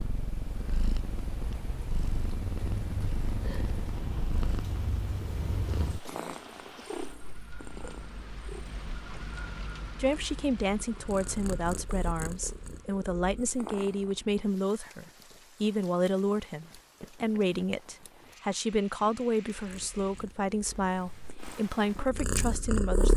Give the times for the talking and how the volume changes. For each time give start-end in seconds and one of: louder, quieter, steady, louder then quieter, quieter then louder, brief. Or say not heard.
9.9-23.1 steady.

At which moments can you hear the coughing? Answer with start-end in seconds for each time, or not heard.
6.0-7.0.